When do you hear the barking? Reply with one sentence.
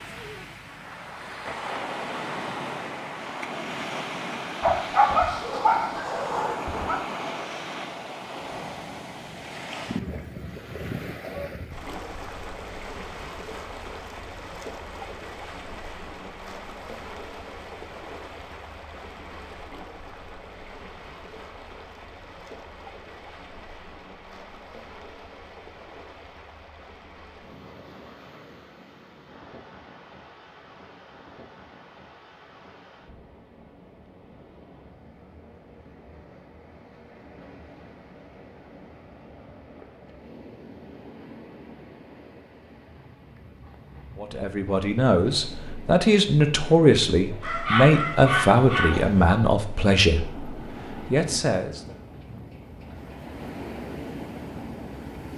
You can hear the barking from 4.6 to 7.0 s and from 47.4 to 49.4 s.